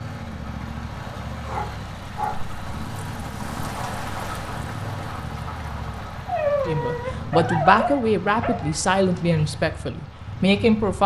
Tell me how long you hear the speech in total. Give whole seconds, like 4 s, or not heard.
4 s.